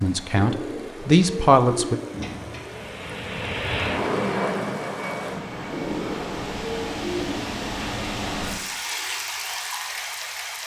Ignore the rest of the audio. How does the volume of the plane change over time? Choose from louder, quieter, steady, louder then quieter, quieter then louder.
louder then quieter.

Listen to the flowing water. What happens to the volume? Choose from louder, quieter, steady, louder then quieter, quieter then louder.
louder.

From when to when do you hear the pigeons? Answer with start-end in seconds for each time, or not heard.
0.3-3.0, 5.7-7.5.